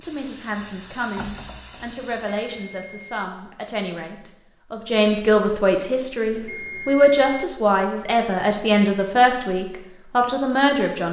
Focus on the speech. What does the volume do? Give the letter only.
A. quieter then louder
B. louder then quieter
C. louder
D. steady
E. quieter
C.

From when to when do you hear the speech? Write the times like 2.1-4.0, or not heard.
0.0-11.0.